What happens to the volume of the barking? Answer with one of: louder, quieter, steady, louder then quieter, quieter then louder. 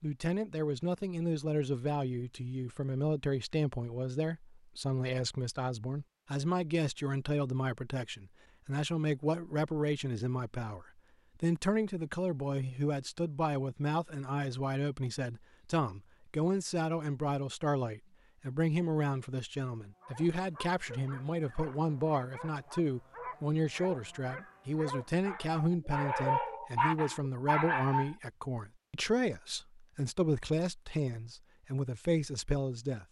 louder.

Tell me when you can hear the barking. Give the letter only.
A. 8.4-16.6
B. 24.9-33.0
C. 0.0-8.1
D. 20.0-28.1
D.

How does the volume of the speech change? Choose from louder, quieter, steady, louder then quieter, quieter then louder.
steady.